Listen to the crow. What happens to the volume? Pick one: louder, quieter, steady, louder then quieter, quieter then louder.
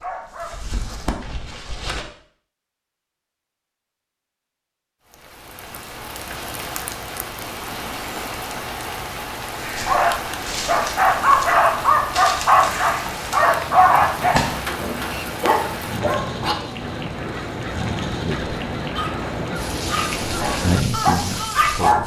louder.